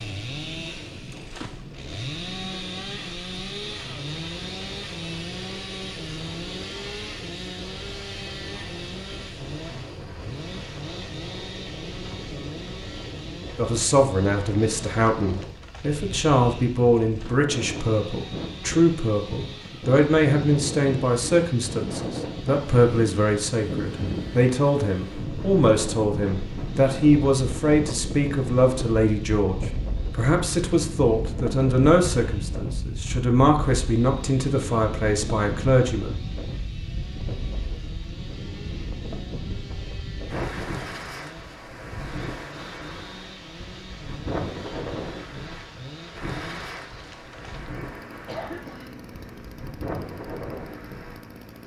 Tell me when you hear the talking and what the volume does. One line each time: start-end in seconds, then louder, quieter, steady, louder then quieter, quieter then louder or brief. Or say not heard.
13.6-36.1 steady.